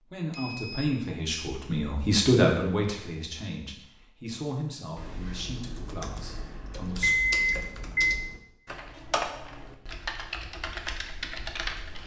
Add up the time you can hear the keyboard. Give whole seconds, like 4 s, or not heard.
7 s.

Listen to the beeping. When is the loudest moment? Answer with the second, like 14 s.
7 s.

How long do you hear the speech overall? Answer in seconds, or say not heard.
7 s.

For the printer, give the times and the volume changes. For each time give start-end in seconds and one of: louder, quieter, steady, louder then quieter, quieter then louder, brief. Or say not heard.
not heard.